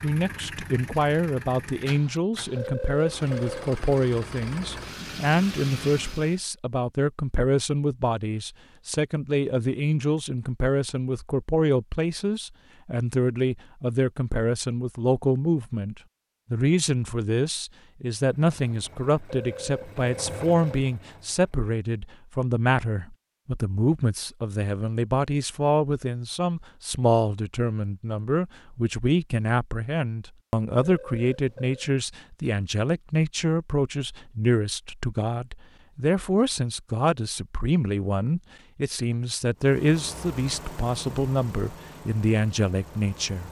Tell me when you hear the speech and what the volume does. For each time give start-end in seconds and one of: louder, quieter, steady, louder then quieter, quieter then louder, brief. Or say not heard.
0.0-43.4 steady.